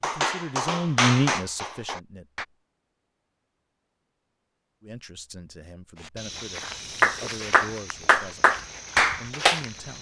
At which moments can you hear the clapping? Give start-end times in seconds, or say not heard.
0.0-2.5, 6.6-9.9.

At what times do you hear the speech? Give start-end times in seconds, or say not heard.
0.0-2.5, 4.8-9.9.